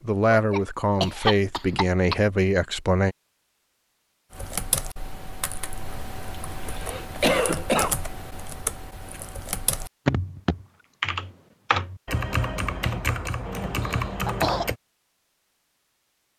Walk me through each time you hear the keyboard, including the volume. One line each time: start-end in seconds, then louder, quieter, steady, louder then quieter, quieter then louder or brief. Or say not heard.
4.3-14.8 louder.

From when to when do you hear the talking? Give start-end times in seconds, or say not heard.
0.0-3.1.